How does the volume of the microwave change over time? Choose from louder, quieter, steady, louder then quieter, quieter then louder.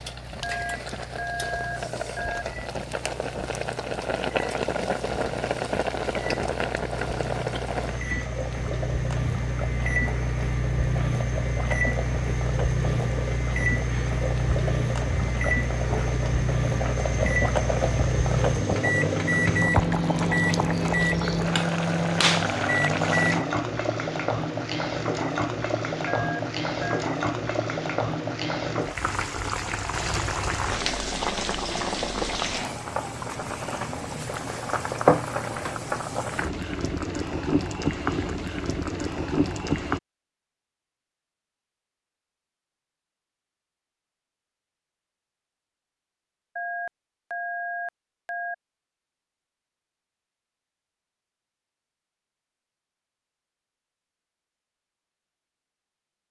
louder.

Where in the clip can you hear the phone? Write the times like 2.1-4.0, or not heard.
0.4-2.5, 26.1-27.1, 46.5-48.5.